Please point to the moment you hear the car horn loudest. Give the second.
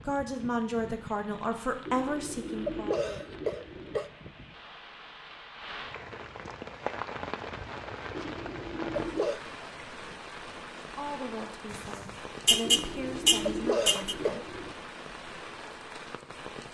13 s.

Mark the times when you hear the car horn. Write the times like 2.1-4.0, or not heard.
11.7-14.2.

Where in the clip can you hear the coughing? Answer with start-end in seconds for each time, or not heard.
1.9-4.1, 8.1-9.4, 12.6-14.8.